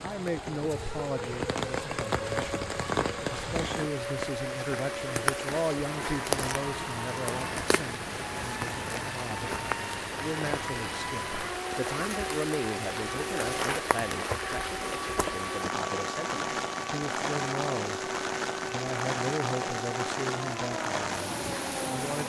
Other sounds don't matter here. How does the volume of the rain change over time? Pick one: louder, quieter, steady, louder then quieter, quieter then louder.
steady.